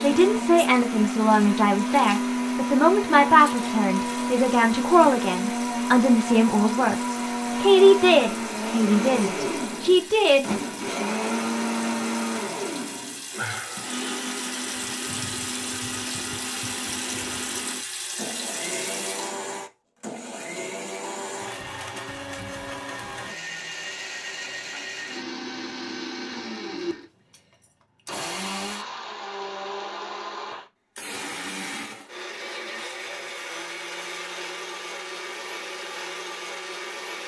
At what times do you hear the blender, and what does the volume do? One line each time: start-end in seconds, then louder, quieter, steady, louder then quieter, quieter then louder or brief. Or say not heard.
0.0-37.2 quieter.